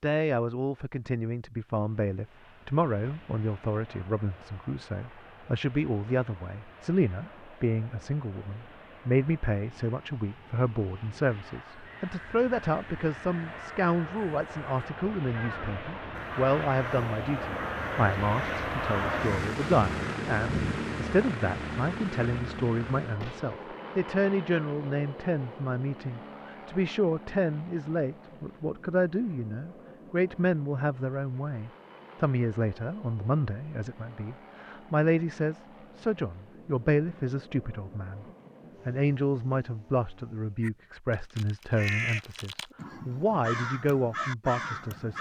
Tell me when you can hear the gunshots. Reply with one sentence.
The gunshots can be heard from 23.2 to 23.7 s.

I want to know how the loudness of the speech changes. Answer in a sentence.
The loudness of the speech stays about the same.